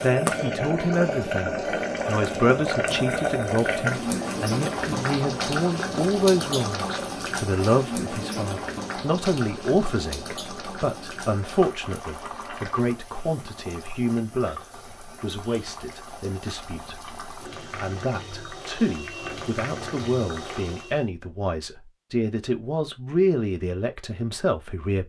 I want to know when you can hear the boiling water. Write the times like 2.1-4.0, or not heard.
0.0-21.1.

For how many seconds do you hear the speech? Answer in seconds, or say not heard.
25 s.